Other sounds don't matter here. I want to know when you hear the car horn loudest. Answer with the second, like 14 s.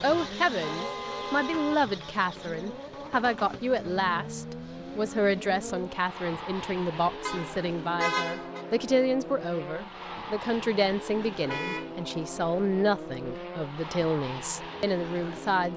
8 s.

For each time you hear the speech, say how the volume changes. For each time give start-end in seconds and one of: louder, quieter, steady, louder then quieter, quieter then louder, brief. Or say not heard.
0.0-15.7 steady.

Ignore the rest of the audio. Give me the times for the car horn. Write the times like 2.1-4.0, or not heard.
0.1-1.8, 7.2-8.7, 11.4-11.9.